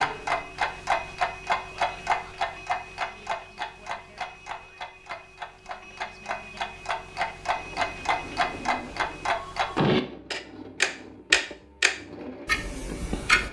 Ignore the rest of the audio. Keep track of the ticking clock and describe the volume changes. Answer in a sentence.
The loudness of the ticking clock goes down, then up.